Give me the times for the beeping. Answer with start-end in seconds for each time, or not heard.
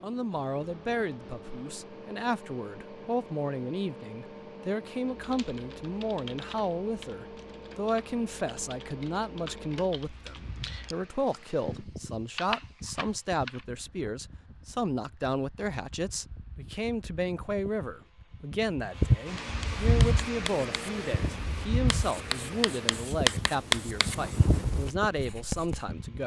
not heard.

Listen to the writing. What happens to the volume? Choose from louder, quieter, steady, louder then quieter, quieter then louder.
louder then quieter.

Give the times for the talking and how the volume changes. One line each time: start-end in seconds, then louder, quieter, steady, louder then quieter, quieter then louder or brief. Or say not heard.
0.0-26.2 steady.